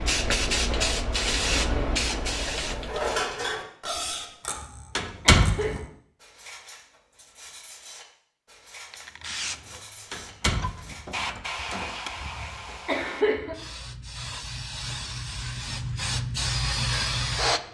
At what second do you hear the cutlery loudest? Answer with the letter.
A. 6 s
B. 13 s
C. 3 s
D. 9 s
C.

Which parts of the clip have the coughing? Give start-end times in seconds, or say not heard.
4.0-5.8, 11.6-13.6.